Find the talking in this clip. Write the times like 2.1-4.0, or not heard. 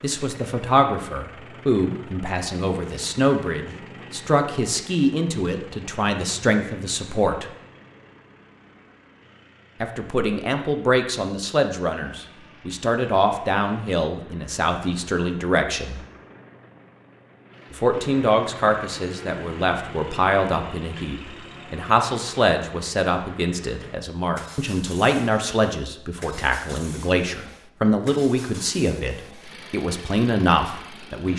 0.0-7.5, 9.8-16.0, 17.7-31.3.